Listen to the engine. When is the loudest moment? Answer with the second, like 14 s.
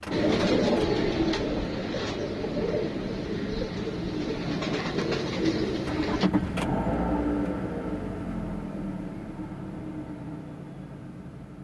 7 s.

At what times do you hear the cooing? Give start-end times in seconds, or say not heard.
0.1-6.3.